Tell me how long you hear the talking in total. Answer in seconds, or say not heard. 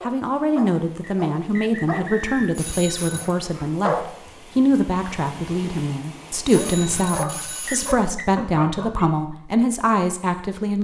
11 s.